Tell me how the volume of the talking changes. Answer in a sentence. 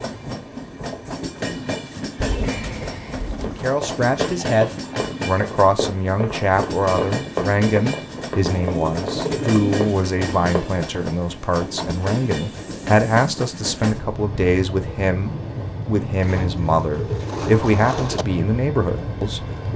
The volume of the talking stays about the same.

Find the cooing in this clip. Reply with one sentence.
The cooing can be heard from 2.1 to 3.7 s, from 8.4 to 10.1 s and from 16.2 to 18.2 s.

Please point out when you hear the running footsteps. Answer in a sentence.
The running footsteps can be heard from 3.4 to 11.1 s.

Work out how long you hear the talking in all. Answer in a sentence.
The talking can be heard for 16 seconds in total.